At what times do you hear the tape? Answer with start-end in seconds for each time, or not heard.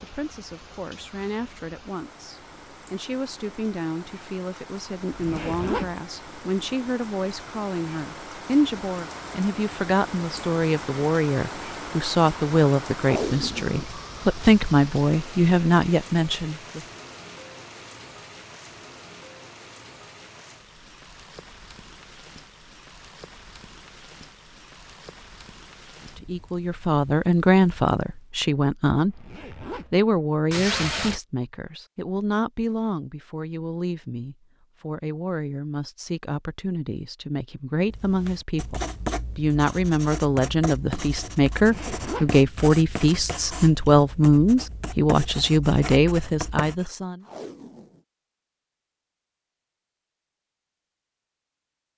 13.0-13.9, 30.5-31.2, 47.2-48.0.